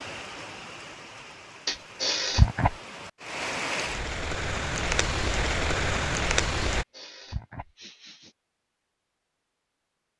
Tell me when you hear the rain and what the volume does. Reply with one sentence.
You can hear the rain from 0.0 to 6.8 s, getting louder.